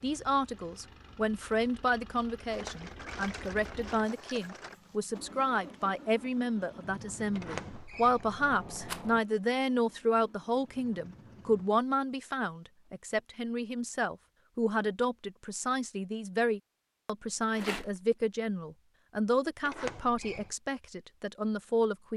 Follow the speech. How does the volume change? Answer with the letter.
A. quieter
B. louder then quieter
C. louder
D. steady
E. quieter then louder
D.